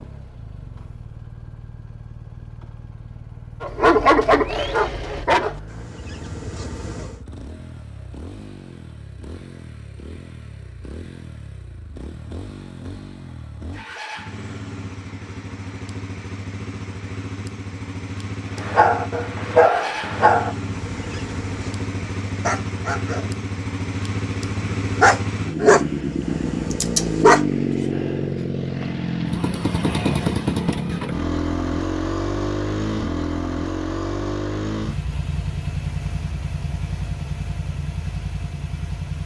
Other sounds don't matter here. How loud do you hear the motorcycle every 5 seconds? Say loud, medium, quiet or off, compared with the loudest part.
quiet, quiet, quiet, medium, medium, loud, loud, medium.